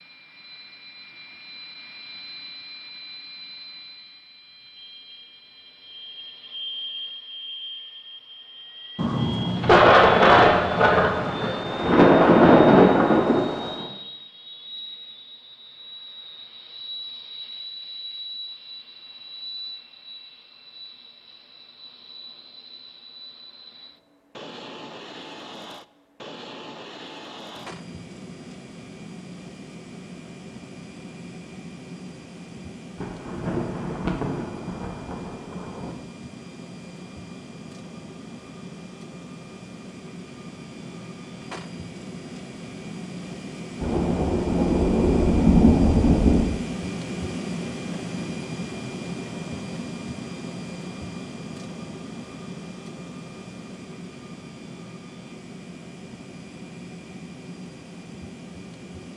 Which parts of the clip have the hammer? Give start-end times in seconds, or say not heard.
not heard.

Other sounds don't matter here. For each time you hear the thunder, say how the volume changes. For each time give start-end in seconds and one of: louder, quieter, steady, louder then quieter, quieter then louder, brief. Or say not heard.
8.9-13.8 quieter then louder
33.0-35.9 brief
43.8-46.5 brief.